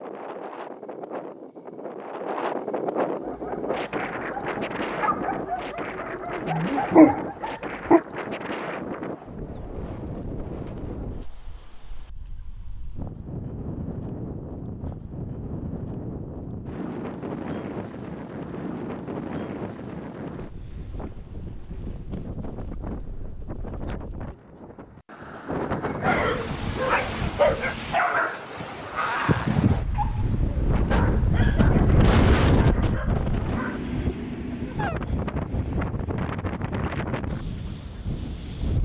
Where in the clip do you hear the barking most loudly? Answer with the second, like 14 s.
7 s.